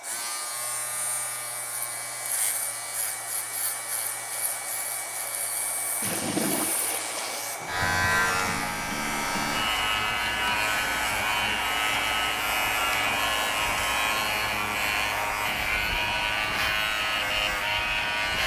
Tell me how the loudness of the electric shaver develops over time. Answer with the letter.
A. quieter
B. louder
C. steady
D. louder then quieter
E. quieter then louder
B.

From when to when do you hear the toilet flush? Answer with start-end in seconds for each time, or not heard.
6.0-7.5.